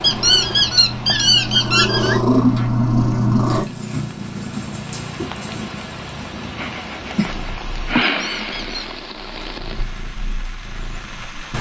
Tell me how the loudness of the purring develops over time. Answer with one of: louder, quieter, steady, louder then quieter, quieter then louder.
quieter.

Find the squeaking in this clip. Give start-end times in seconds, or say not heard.
0.0-2.2, 8.0-8.9.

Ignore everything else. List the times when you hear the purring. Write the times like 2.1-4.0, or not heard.
0.0-11.2.